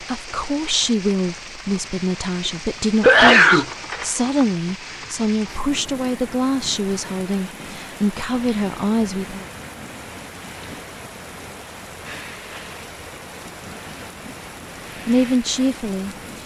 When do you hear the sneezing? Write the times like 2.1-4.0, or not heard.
3.0-4.5.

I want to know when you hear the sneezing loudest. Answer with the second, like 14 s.
3 s.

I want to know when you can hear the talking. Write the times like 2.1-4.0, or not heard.
0.0-9.4, 15.1-16.4.